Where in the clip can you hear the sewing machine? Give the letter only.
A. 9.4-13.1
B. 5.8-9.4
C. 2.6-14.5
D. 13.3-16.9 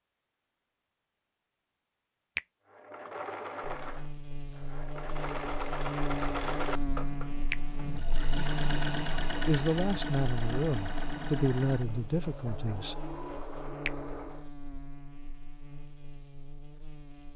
C.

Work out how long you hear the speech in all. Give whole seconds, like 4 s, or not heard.
4 s.